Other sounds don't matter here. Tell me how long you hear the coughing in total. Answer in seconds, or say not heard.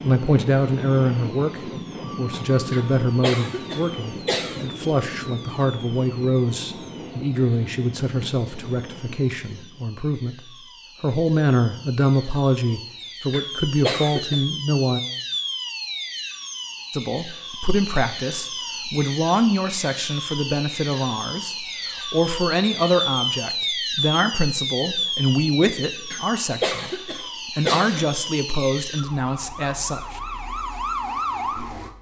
5 s.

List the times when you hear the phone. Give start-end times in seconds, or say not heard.
not heard.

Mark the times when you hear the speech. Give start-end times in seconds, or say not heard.
0.0-15.0, 16.9-30.2.